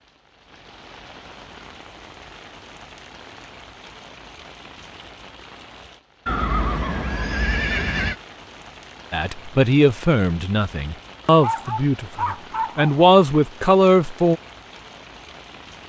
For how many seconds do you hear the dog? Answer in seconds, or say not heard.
2 s.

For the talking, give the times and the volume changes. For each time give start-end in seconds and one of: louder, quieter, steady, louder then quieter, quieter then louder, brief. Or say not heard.
9.1-14.4 quieter then louder.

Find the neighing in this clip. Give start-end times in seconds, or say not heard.
6.2-8.2.